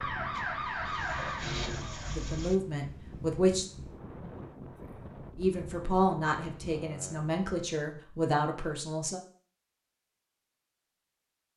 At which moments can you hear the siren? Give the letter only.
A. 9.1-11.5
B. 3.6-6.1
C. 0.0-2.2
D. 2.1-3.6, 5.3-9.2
C.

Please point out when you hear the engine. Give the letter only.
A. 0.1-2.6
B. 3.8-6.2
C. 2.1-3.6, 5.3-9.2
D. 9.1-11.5
A.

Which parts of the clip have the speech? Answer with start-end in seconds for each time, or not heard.
2.1-3.6, 5.3-9.2.